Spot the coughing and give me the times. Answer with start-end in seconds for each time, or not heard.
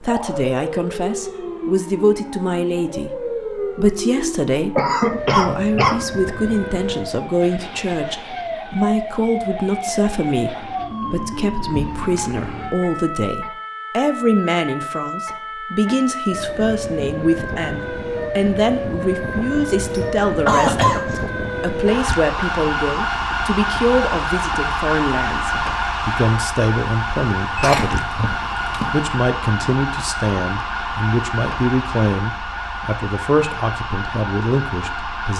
4.8-6.0, 19.8-21.3, 27.6-29.1.